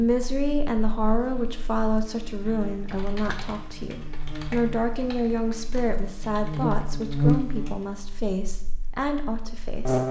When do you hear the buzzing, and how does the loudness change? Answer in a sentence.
The buzzing can be heard from 0.2 to 10.0 s, getting louder then quieter.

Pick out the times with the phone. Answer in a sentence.
The phone can't be heard in this clip.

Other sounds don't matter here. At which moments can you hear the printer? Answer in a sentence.
You can't hear the printer here.